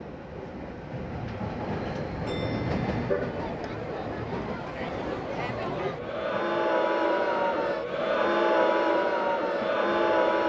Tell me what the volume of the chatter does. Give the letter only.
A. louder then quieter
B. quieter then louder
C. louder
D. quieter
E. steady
C.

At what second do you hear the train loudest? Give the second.
3 s.